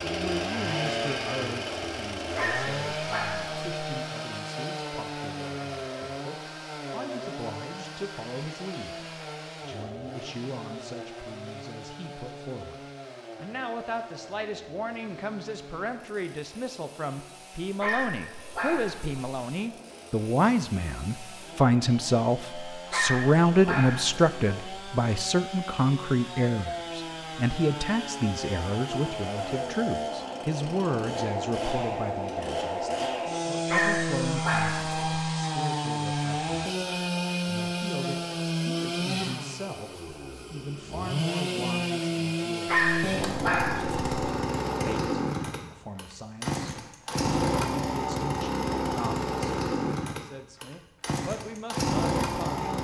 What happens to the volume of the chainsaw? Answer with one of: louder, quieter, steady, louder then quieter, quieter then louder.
quieter then louder.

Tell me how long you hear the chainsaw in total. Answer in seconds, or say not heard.
53 s.